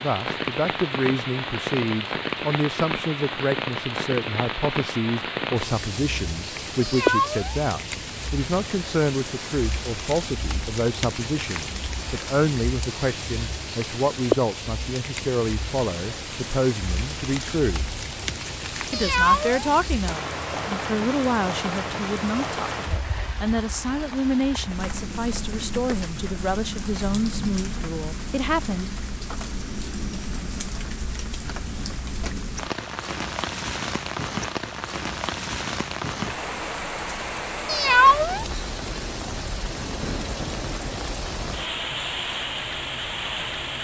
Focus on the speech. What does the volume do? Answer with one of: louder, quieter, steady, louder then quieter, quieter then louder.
steady.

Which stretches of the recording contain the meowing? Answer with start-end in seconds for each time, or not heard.
6.8-7.5, 18.9-19.6, 37.6-38.5.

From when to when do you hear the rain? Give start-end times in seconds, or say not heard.
0.0-43.8.